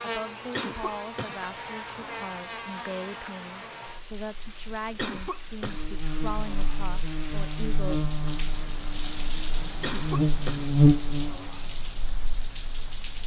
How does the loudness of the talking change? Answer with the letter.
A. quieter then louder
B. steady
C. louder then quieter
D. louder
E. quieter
B.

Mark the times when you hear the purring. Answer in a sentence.
The purring can't be heard in this clip.